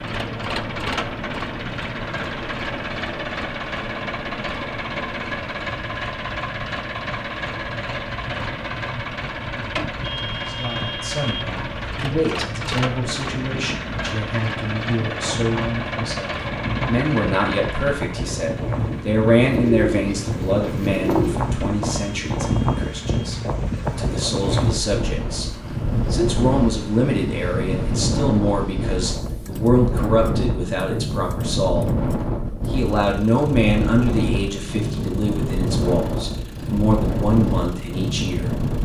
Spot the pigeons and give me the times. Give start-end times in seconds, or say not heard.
19.4-21.4.